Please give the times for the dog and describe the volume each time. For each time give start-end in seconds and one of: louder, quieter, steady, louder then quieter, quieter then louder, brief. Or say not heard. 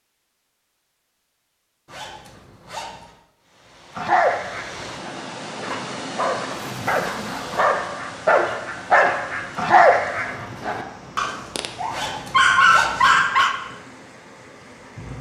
4.0-13.5 louder.